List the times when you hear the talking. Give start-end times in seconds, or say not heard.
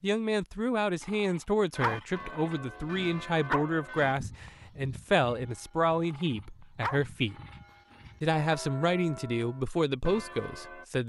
0.0-7.3, 8.2-11.0.